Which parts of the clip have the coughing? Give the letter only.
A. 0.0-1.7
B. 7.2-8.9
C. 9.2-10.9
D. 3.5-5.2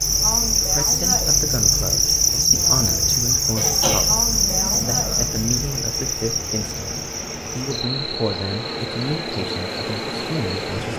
D.